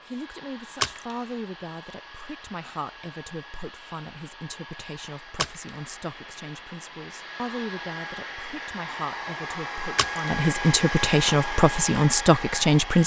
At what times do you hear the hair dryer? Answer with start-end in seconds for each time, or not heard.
0.0-13.0.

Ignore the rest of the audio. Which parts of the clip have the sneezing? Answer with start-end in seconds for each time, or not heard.
not heard.